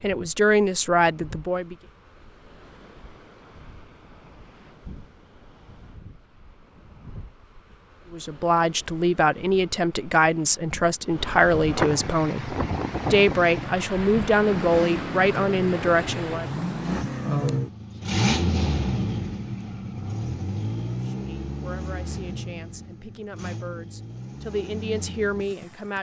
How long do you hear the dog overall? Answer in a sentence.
You can't hear the dog here.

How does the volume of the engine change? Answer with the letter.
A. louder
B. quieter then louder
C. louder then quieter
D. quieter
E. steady
C.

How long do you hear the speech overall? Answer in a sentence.
The speech can be heard for 15 seconds in total.